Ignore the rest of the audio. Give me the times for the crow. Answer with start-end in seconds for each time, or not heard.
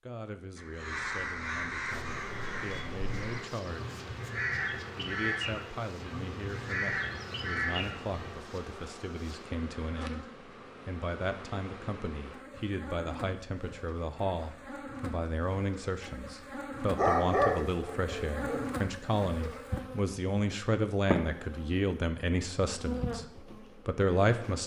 0.6-8.3.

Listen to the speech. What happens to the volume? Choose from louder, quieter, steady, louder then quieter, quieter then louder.
louder.